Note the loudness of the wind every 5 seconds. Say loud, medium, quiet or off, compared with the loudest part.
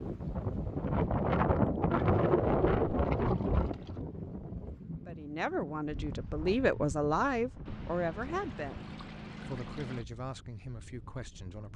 loud, quiet, quiet.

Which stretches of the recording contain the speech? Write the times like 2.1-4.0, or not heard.
5.0-11.7.